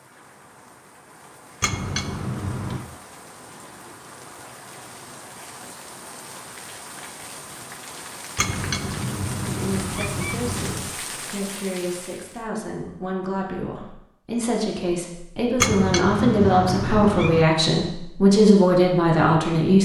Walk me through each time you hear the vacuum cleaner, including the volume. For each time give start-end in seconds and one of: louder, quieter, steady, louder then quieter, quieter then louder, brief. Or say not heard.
not heard.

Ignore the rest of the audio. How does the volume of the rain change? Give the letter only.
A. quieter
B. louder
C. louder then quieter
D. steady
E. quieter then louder
B.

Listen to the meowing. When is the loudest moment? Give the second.
16 s.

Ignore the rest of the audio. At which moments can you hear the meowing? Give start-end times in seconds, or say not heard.
1.6-2.9, 8.3-10.9, 15.6-17.4.